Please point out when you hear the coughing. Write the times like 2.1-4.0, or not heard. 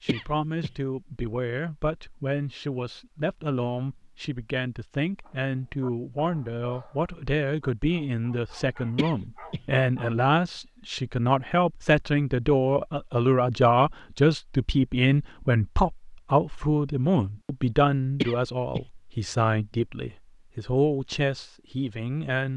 0.1-0.7, 8.9-9.6, 18.2-18.9.